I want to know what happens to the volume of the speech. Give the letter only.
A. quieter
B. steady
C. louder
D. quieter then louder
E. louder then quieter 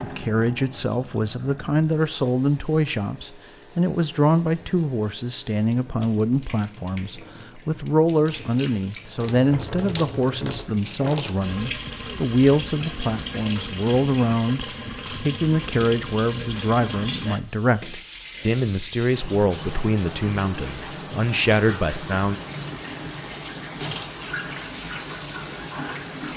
B.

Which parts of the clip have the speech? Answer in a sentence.
You can hear the speech from 0.0 to 22.4 s.